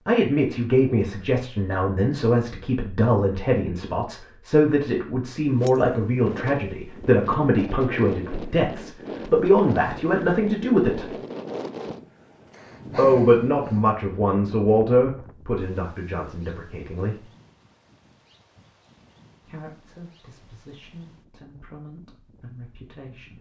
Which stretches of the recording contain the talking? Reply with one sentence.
You can hear the talking from 0.1 to 11.2 s, from 12.9 to 17.2 s and from 19.4 to 23.3 s.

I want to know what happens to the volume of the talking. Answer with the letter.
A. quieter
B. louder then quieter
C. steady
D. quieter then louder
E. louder
A.